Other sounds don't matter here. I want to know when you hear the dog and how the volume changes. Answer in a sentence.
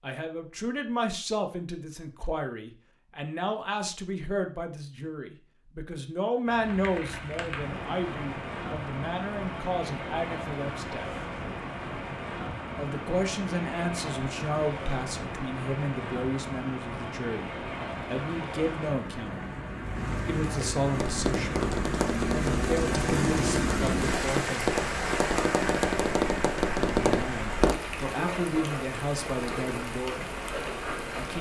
The dog can't be heard in this clip.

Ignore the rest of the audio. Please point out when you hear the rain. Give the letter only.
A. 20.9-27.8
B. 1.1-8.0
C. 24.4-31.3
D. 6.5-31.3
D.